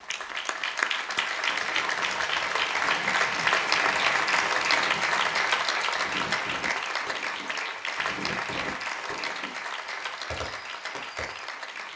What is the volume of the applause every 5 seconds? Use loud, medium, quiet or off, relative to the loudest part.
loud, loud, medium.